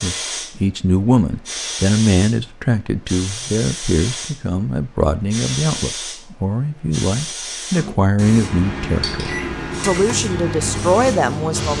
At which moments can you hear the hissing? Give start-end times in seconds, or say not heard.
0.0-4.4, 5.3-11.7.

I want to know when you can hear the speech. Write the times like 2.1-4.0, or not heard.
0.0-11.7.